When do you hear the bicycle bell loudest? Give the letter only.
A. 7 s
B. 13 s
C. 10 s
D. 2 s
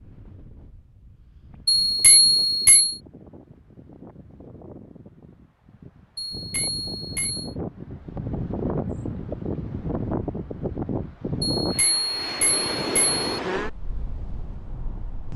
D.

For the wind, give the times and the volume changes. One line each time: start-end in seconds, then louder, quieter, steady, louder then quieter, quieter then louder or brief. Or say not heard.
0.0-15.3 louder.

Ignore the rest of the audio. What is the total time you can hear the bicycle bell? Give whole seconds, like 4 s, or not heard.
4 s.